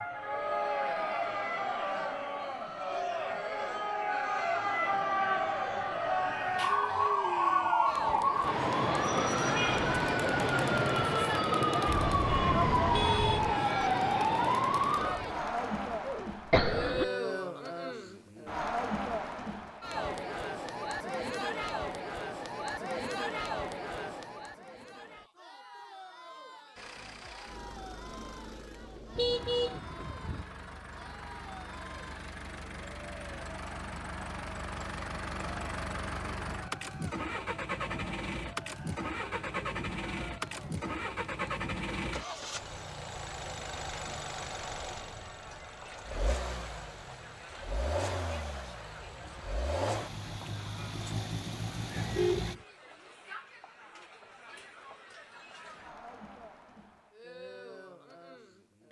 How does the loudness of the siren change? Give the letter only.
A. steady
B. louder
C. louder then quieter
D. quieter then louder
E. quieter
B.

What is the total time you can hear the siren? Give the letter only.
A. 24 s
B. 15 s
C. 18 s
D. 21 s
B.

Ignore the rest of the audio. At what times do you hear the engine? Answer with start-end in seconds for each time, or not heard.
26.8-52.5.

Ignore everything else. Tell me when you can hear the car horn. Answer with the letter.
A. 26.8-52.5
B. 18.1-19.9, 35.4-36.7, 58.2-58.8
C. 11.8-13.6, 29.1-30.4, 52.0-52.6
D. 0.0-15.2
C.